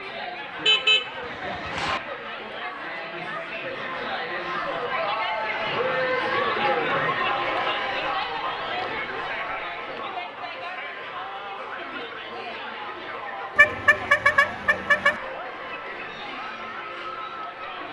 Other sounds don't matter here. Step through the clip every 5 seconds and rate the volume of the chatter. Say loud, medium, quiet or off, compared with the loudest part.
medium, loud, medium, medium.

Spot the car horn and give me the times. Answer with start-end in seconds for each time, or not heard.
0.6-2.0, 13.6-15.2.